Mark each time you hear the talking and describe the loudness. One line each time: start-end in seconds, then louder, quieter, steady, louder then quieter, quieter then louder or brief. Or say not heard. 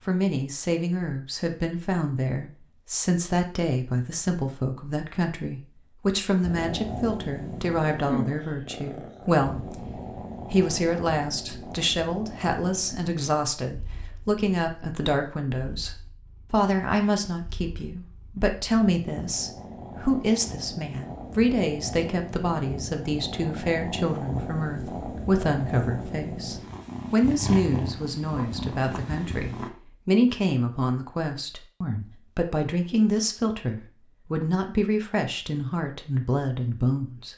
0.1-37.3 steady.